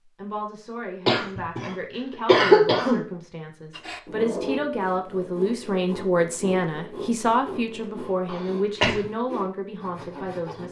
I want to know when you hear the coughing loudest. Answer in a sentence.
The loudest moment of the coughing is at 2 seconds.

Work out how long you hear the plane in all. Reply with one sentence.
The plane can't be heard in this clip.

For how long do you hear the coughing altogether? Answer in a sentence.
The coughing can be heard for 3 seconds in total.